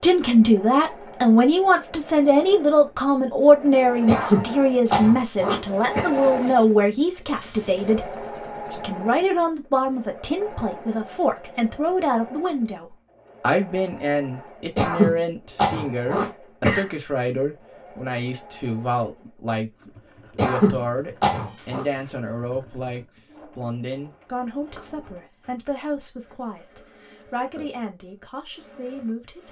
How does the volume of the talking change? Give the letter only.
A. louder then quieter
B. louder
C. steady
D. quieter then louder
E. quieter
E.